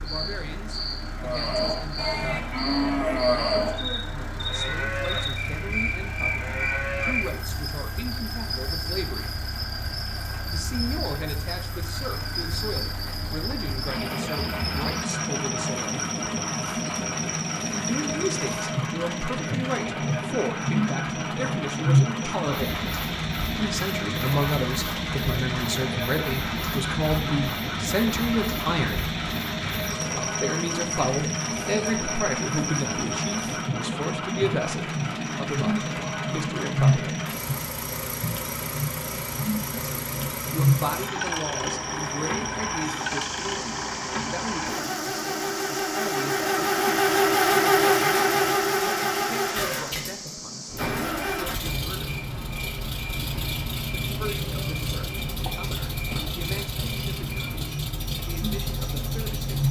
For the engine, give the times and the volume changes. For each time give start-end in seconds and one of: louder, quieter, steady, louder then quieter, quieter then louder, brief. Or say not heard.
0.0-59.6 louder.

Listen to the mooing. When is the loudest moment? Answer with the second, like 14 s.
3 s.